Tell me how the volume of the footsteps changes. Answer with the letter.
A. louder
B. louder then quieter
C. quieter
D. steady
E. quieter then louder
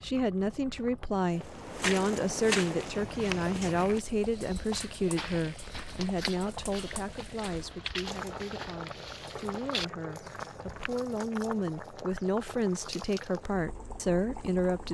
C.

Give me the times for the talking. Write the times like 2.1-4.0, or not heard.
0.0-14.8.